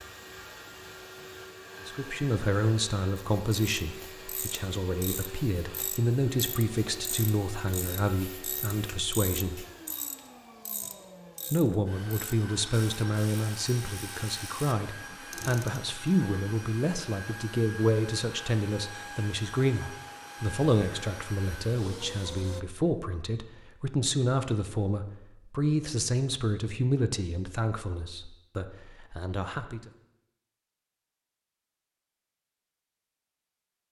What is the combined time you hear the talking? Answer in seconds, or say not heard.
26 s.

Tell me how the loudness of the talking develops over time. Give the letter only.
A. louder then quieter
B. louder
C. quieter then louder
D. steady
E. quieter
D.